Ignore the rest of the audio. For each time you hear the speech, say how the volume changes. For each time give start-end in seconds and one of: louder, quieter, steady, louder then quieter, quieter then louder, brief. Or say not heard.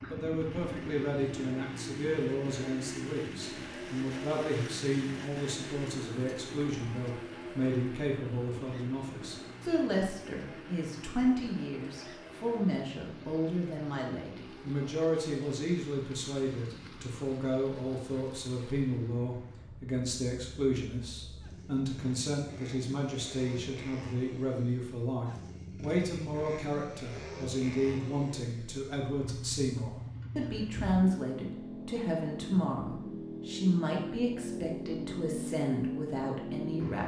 0.1-37.0 steady.